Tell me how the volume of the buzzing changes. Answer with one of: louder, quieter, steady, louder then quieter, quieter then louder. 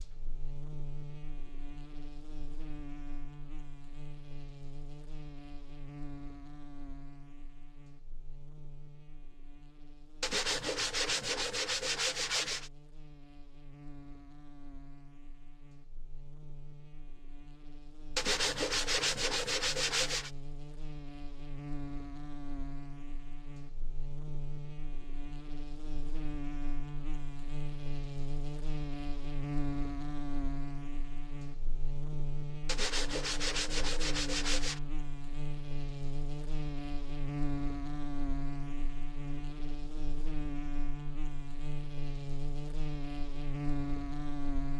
quieter then louder.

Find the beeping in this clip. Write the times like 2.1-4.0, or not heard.
not heard.